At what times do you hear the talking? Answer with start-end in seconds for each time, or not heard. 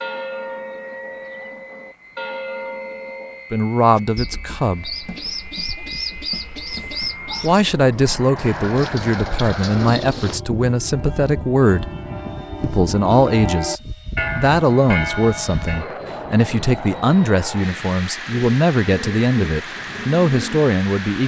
3.5-5.0, 7.4-11.9, 12.6-21.2.